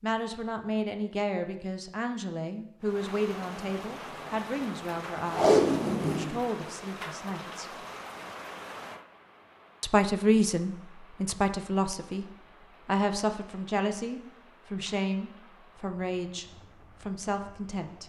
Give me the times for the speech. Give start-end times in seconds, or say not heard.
0.0-7.7, 9.8-18.0.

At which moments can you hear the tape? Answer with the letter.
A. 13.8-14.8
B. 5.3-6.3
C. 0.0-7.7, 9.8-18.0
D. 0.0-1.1
B.